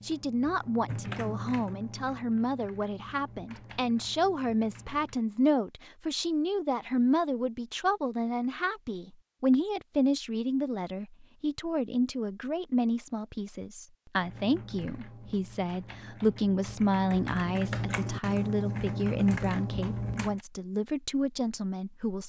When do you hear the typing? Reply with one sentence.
You can hear the typing from 0.0 to 5.2 s and from 14.2 to 20.4 s.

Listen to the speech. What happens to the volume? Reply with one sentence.
The loudness of the speech stays about the same.